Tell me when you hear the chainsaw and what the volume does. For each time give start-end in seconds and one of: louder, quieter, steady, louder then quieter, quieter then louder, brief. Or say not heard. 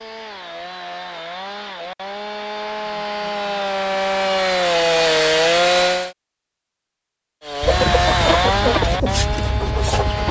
0.0-6.2 louder
7.4-10.2 brief.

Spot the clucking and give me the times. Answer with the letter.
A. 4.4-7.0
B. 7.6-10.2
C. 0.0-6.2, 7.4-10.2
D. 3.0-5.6
B.